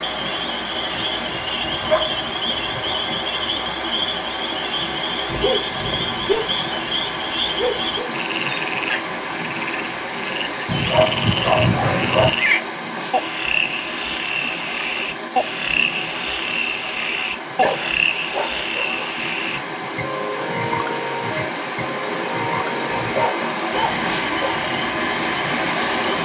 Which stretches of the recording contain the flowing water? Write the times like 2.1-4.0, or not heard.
0.0-26.2.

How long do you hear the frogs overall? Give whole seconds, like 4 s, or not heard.
26 s.